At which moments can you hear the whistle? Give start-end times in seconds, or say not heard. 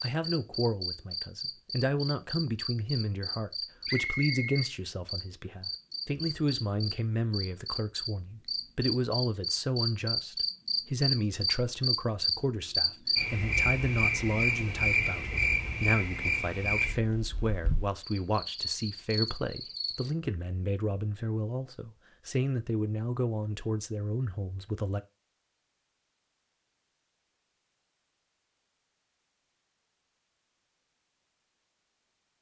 3.9-4.7.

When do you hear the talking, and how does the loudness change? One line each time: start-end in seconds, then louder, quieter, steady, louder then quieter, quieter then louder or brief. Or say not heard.
0.0-25.0 steady.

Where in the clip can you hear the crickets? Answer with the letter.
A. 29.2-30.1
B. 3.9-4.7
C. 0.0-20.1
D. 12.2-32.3
C.